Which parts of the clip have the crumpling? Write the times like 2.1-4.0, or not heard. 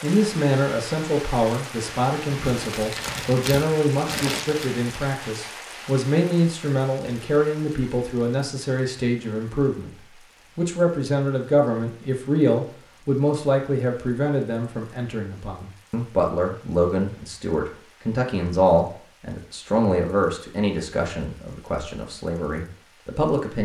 2.2-4.8.